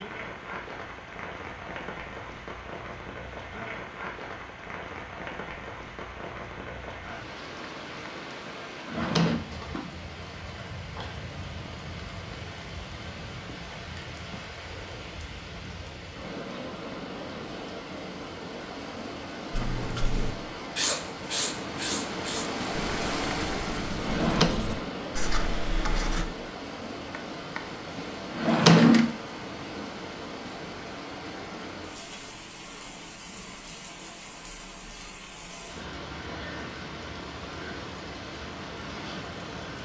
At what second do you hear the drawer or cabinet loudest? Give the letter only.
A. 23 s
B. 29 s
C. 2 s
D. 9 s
B.